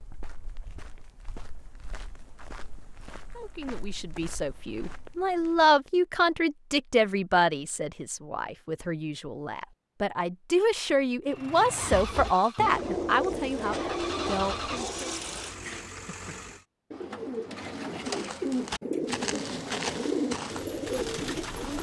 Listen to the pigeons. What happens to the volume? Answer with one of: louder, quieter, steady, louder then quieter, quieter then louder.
quieter then louder.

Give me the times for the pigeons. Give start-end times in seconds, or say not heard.
11.8-21.7.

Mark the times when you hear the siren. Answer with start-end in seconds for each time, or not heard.
not heard.